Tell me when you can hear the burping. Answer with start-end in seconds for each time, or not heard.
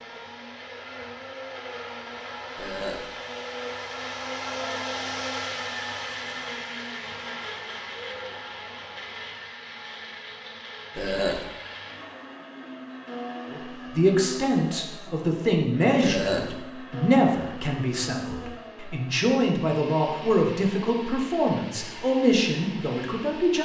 2.5-3.0, 10.9-11.4, 16.0-16.5.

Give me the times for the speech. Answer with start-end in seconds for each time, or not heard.
13.5-23.6.